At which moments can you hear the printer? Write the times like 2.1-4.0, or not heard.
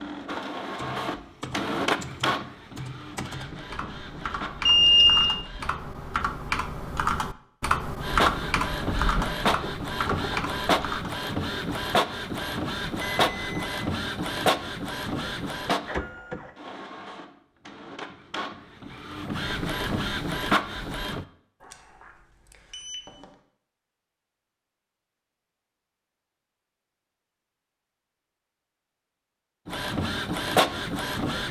0.0-5.7, 8.0-21.2, 29.6-31.4.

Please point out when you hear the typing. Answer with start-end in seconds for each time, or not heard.
0.8-11.2.